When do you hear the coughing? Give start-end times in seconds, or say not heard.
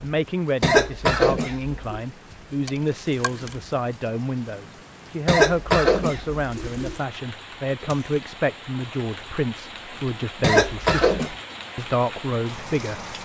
0.6-2.0, 5.2-7.0, 10.4-11.3.